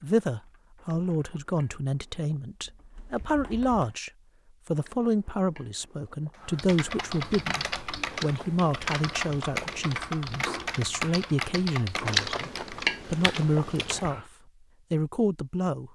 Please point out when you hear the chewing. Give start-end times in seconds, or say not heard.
0.8-2.3, 4.8-6.3, 8.1-9.8, 12.1-14.1.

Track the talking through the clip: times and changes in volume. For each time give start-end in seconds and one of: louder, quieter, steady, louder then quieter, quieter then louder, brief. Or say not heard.
0.0-14.2 steady
14.9-15.9 brief.